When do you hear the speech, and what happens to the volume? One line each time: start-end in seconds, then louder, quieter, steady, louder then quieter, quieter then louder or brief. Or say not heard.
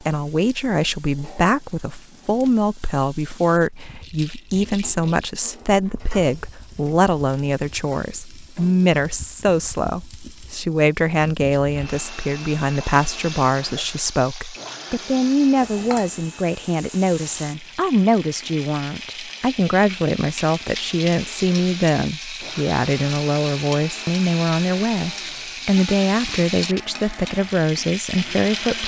0.0-28.8 steady.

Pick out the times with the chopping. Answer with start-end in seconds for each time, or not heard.
not heard.